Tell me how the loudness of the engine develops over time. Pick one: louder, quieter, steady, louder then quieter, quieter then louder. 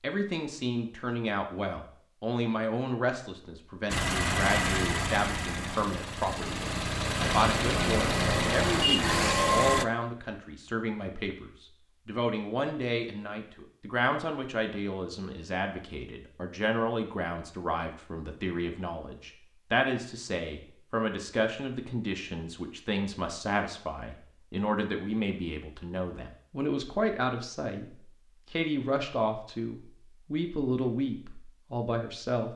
quieter then louder.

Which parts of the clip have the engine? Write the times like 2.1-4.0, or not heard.
3.9-9.8.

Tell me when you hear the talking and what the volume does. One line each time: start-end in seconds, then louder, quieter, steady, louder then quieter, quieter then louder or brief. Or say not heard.
0.0-32.5 steady.